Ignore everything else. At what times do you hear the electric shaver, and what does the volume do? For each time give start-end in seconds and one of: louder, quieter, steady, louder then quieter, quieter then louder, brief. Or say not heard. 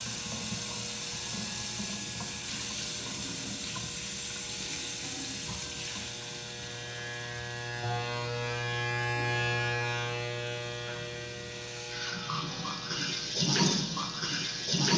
0.0-14.8 louder then quieter.